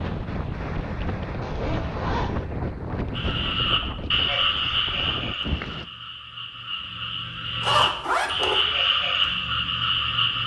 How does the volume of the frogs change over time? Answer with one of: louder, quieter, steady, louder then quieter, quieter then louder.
quieter then louder.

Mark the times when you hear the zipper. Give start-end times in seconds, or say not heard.
1.4-2.3, 7.6-8.6.